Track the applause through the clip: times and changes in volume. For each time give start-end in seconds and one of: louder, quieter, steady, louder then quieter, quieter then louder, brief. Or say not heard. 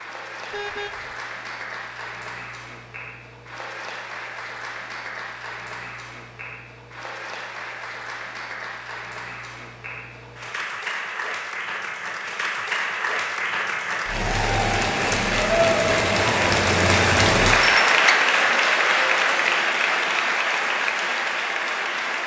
0.0-22.2 louder.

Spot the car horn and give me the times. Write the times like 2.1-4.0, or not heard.
0.5-1.1.